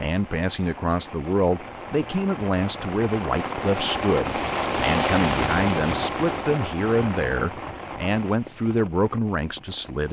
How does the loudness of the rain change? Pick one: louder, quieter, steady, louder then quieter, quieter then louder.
louder then quieter.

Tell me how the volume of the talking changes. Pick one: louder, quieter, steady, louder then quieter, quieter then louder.
steady.